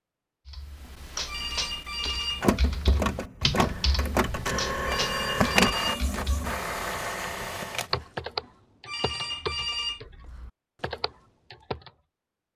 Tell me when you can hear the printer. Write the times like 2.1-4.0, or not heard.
2.4-7.9.